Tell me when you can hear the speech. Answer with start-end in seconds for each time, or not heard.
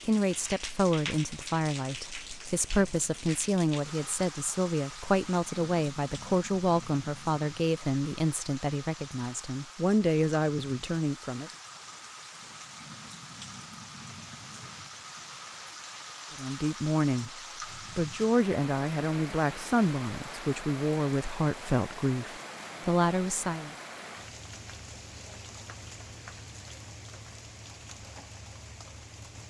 0.0-11.5, 16.4-17.3, 17.9-23.8.